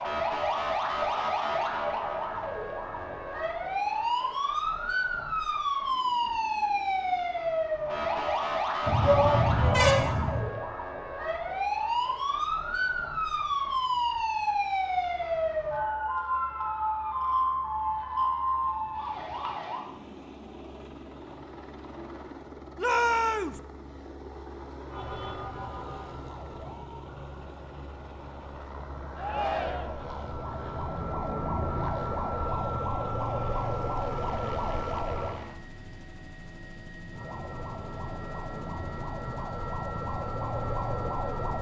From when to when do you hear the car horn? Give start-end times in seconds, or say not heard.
8.8-10.4.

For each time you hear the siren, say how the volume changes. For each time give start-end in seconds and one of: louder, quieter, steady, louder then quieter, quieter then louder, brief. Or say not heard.
0.0-19.9 steady
24.9-35.4 quieter then louder
37.1-41.5 louder.